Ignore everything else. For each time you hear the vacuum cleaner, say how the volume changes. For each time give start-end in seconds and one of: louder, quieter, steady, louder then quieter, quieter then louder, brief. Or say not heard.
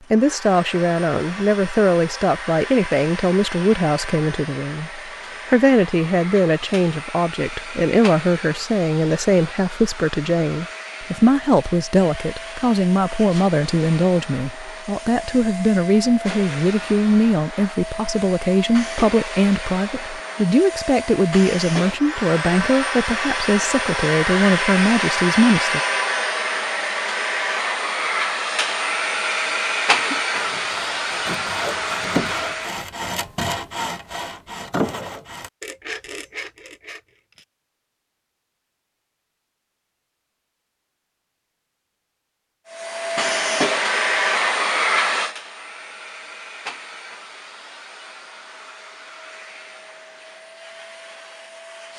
0.0-32.9 louder
42.7-51.9 quieter.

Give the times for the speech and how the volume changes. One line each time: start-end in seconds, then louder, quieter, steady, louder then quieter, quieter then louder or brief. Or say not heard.
0.1-25.8 steady.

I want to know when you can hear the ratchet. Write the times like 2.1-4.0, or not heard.
not heard.